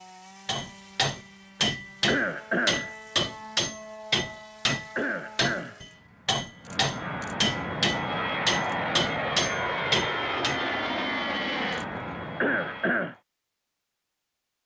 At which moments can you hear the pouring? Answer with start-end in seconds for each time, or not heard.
not heard.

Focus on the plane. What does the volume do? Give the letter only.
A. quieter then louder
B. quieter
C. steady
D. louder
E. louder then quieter
D.